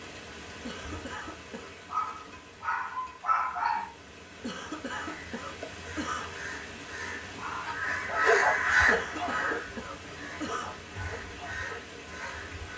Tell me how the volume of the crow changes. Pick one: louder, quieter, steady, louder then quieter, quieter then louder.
louder then quieter.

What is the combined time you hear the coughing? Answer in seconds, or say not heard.
5 s.